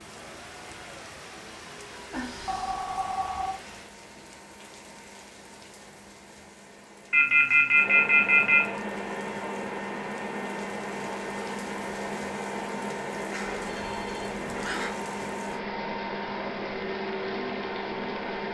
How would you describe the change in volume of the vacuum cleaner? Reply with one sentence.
The volume of the vacuum cleaner goes up.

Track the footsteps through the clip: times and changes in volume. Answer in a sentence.
You can't hear the footsteps here.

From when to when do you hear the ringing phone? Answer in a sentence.
The ringing phone can be heard from 2.1 to 3.5 s, from 7.1 to 8.7 s and from 13.6 to 14.9 s.